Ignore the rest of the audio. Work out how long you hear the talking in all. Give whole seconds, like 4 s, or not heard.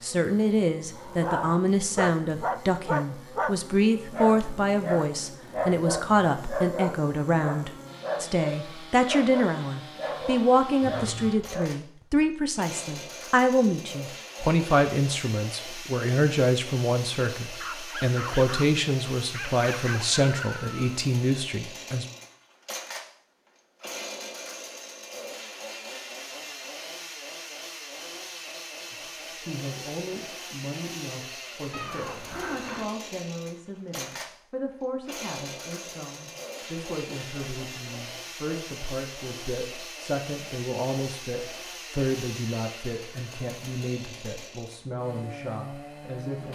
40 s.